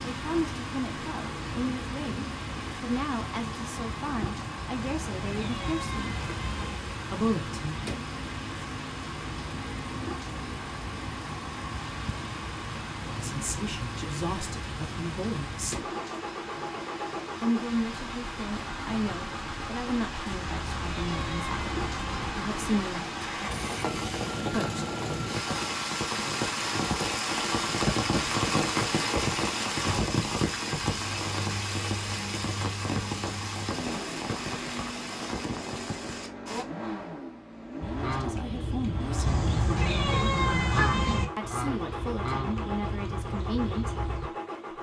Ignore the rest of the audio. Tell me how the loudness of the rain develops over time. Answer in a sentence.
The loudness of the rain goes up.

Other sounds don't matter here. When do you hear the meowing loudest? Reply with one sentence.
The loudest moment of the meowing is at 40 seconds.